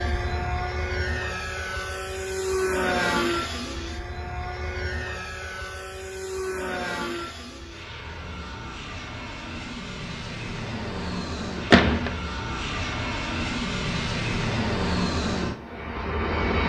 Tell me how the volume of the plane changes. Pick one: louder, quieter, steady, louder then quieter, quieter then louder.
quieter then louder.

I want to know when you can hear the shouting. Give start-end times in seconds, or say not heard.
not heard.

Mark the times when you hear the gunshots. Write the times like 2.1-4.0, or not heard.
11.7-12.2.